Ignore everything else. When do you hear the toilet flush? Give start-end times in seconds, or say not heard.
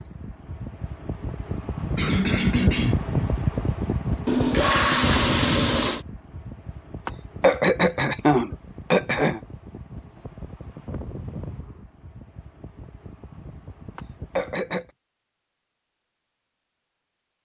4.2-6.0.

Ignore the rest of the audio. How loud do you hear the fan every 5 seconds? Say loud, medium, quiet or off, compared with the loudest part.
loud, medium, quiet, off.